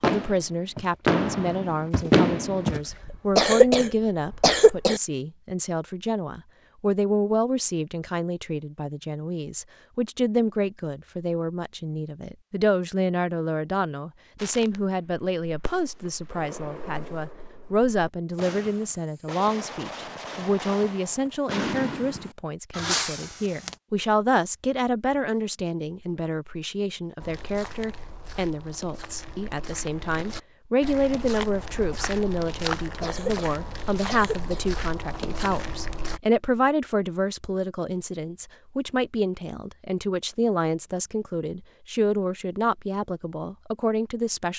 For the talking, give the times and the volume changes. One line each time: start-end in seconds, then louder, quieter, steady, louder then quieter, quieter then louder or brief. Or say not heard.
0.0-44.5 steady.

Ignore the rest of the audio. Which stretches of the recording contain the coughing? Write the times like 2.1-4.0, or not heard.
3.1-5.0, 33.0-34.6.